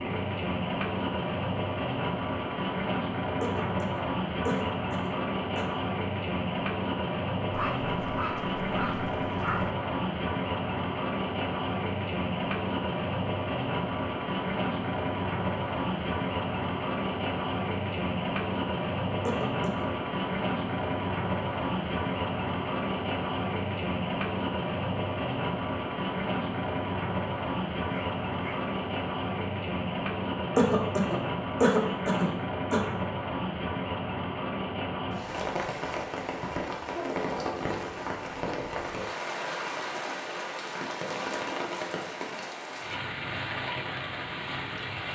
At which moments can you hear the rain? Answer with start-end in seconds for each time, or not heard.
0.0-45.0.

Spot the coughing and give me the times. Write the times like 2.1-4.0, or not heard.
3.4-5.8, 19.2-19.9, 30.6-32.8.